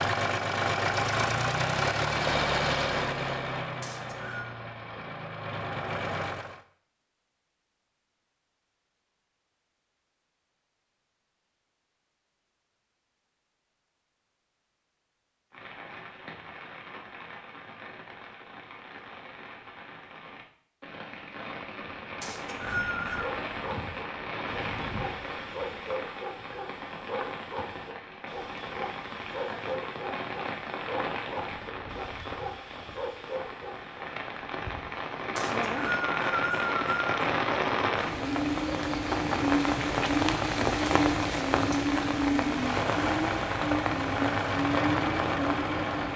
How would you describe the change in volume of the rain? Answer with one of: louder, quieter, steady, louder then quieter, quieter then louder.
louder.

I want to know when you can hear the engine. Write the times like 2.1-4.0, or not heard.
0.0-6.6, 42.5-46.1.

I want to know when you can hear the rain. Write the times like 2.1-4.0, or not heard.
15.5-46.1.